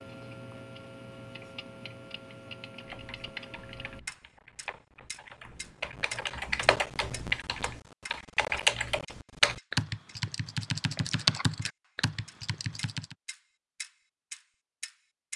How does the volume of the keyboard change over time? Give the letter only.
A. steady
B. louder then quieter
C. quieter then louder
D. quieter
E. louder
E.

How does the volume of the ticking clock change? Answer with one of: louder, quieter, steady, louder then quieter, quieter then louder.
steady.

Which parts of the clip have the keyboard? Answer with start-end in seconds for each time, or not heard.
2.7-13.2.